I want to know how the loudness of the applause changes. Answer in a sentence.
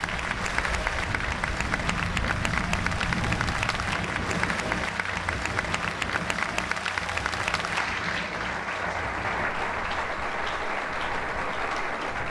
The volume of the applause stays about the same.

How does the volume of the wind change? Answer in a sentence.
The loudness of the wind goes down.